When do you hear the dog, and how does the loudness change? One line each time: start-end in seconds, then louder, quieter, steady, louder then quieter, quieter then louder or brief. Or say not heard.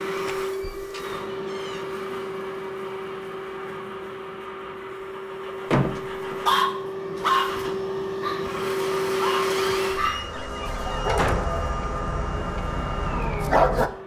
6.5-13.9 quieter.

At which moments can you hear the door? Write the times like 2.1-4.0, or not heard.
0.1-1.9, 5.7-6.5, 9.4-11.5.